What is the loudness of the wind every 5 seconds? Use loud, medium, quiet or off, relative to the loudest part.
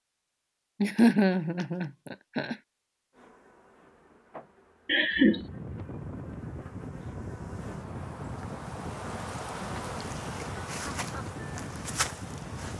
off, loud, loud.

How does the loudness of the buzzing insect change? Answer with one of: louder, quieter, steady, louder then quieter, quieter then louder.
louder.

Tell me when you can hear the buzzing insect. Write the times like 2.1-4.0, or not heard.
3.1-12.7.